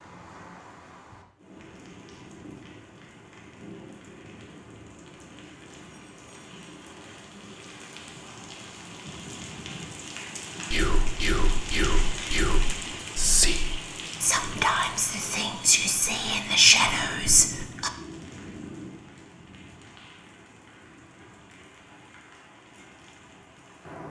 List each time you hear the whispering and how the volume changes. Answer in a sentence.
You can hear the whispering from 10.7 to 17.9 s, getting louder.